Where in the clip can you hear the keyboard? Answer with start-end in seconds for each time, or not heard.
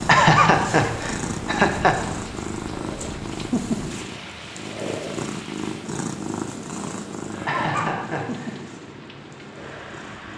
not heard.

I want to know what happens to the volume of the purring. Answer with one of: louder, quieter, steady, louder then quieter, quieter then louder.
quieter.